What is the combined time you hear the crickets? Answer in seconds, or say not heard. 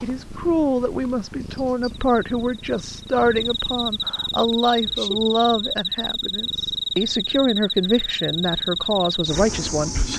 10 s.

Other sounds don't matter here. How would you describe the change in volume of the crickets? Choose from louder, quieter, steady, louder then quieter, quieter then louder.
louder.